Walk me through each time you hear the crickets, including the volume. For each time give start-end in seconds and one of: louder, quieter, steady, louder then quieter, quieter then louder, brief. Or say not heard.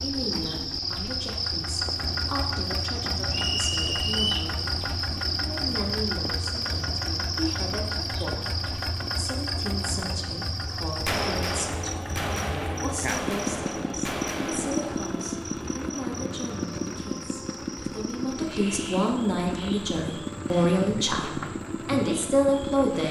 0.0-23.0 quieter.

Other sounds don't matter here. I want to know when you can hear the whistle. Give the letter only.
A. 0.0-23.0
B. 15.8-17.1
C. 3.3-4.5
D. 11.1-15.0
C.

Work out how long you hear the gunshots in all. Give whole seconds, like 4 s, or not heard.
4 s.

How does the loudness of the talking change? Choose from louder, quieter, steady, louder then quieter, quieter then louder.
louder.